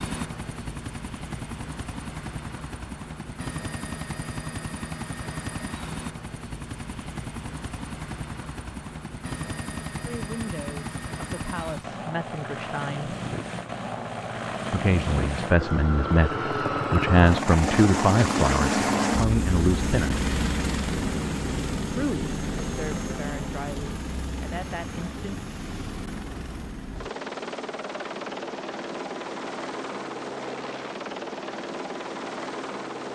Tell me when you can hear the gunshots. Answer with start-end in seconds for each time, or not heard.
not heard.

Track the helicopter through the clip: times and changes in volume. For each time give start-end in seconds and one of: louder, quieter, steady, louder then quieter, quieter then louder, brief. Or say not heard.
0.0-33.1 louder then quieter.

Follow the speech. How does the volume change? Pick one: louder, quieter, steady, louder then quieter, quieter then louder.
louder then quieter.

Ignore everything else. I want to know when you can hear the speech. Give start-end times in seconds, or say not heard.
10.1-13.2, 14.7-20.2, 21.9-25.4.